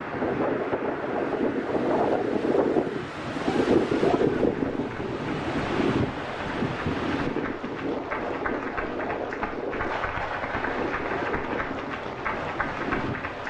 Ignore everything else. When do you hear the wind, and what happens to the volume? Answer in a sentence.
The wind can be heard from 0.0 to 13.4 s, getting quieter.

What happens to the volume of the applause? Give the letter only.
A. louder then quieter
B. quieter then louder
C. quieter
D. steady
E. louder
E.